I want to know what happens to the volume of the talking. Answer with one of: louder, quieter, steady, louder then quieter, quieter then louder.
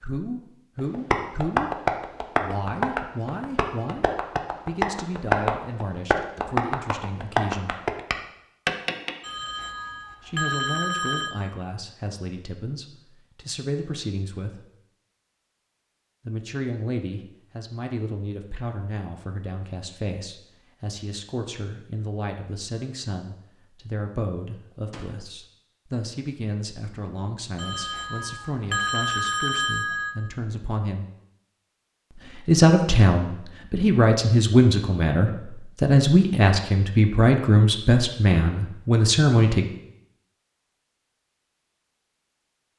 louder.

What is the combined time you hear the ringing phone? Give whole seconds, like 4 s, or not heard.
5 s.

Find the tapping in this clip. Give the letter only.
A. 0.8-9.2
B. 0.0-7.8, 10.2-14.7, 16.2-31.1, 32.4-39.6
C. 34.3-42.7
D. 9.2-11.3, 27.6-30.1
A.